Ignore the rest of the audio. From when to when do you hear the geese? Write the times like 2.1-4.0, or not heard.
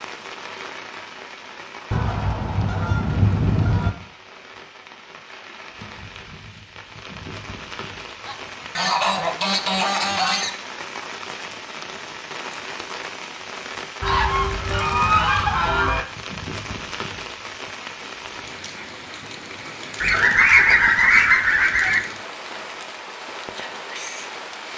1.9-3.9, 8.2-10.6, 14.0-16.1, 20.0-22.0.